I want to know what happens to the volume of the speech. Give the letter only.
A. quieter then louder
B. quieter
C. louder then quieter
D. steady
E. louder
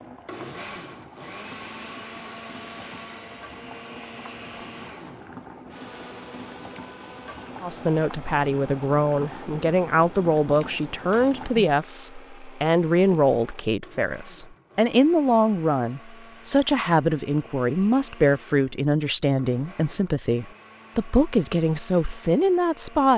D.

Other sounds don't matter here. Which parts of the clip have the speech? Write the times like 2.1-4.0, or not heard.
7.6-23.1.